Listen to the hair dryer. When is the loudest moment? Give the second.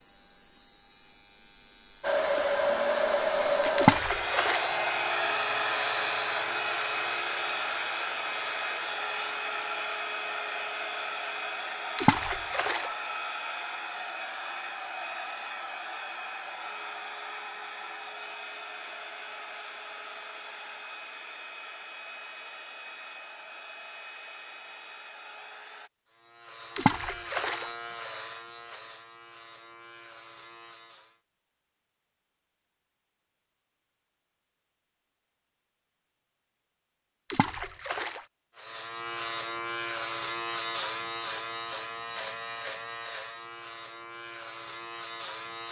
3 s.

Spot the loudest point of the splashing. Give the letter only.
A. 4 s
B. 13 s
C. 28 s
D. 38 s
A.